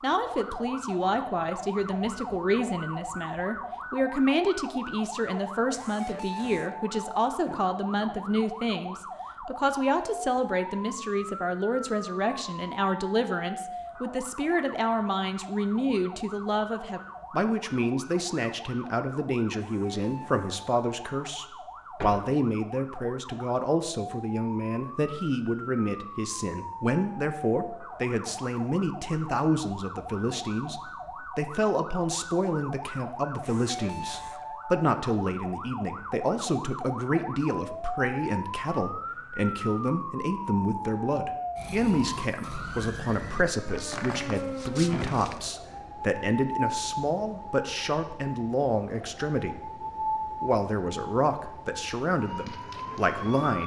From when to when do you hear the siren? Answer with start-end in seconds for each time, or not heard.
0.0-53.6.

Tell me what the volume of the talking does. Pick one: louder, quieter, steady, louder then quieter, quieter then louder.
steady.